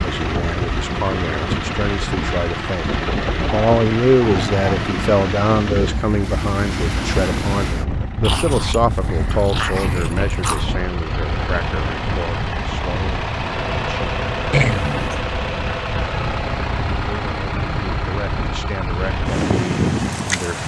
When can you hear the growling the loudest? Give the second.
15 s.